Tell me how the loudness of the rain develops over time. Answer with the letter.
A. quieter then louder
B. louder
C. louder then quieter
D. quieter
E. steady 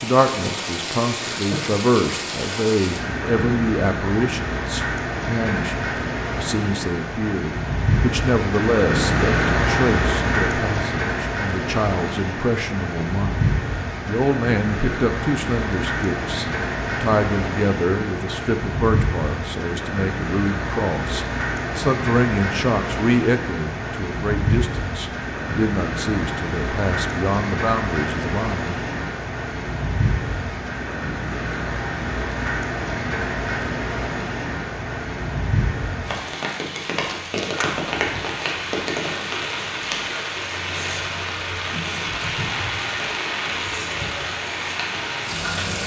E.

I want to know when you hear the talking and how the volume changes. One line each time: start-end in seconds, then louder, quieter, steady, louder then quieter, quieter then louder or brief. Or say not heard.
0.0-28.8 steady.